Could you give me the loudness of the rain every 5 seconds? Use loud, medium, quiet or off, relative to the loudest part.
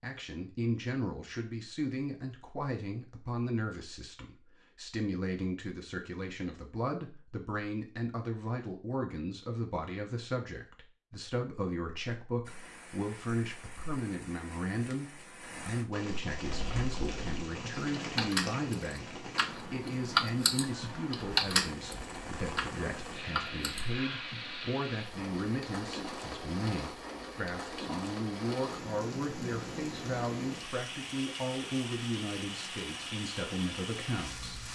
off, off, medium, loud, loud, loud, loud.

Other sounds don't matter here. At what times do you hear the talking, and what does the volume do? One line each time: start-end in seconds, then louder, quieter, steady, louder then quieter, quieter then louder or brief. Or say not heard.
0.0-34.5 steady.